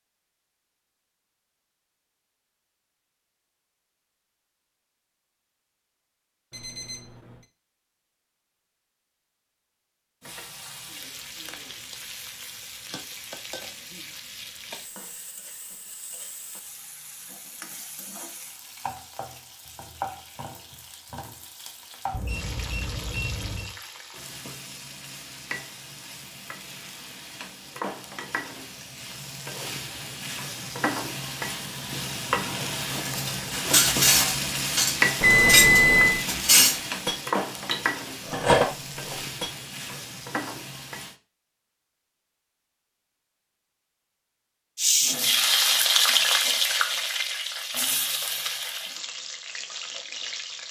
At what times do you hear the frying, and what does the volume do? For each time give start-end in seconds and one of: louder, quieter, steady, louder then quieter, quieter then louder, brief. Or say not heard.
10.2-41.1 louder
44.8-50.6 quieter.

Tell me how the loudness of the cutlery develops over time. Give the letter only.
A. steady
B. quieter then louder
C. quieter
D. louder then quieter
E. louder
B.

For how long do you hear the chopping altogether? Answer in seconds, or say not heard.
not heard.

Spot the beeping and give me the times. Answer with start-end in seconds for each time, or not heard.
6.5-7.5, 22.1-23.8, 35.2-36.2.